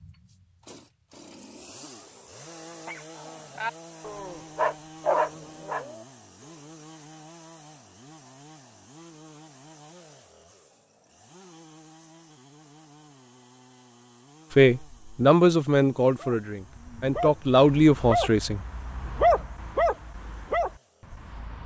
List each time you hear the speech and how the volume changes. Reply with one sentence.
The speech can be heard from 14.6 to 18.6 s, getting quieter then louder.